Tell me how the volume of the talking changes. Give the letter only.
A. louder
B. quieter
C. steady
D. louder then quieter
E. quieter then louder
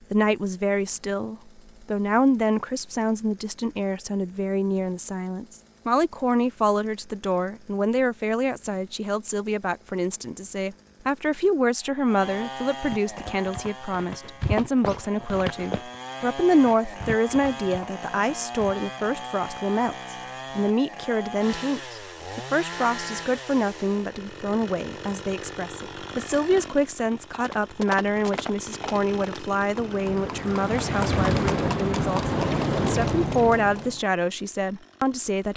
C.